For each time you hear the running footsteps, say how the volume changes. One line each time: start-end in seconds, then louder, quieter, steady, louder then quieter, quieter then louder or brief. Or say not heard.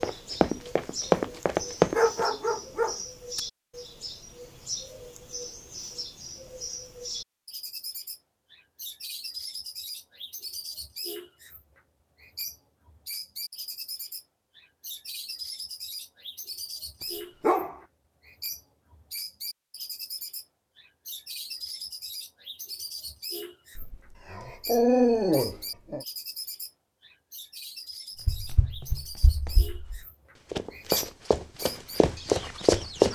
0.0-2.2 brief
28.2-33.1 quieter then louder.